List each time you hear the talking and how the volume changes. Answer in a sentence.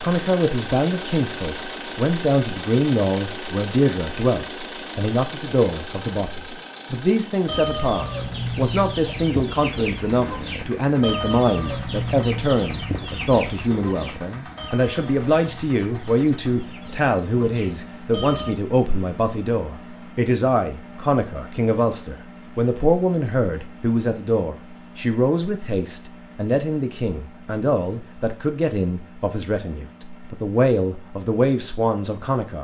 You can hear the talking from 0.0 to 32.6 s, at a steady volume.